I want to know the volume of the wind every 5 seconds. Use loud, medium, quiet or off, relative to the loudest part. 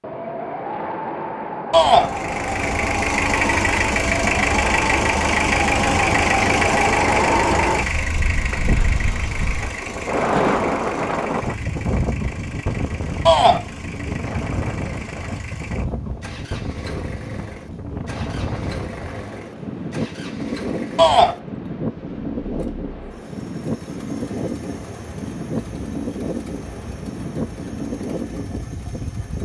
loud, loud, loud, medium, medium, medium.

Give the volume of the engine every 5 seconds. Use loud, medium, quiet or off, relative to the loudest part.
loud, loud, quiet, quiet, quiet, quiet.